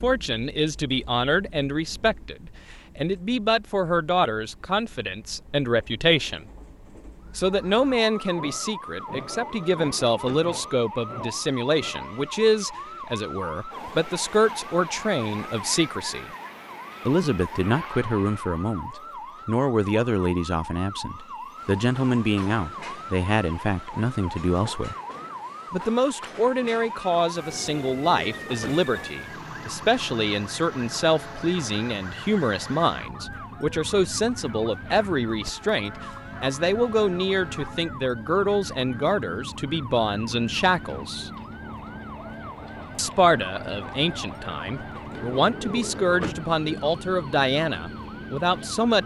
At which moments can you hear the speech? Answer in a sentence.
The speech can be heard from 0.0 to 6.5 s, from 7.3 to 16.3 s, from 17.1 to 24.9 s, from 25.7 to 41.3 s and from 43.0 to 49.0 s.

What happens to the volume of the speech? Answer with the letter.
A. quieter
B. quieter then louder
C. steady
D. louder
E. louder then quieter
C.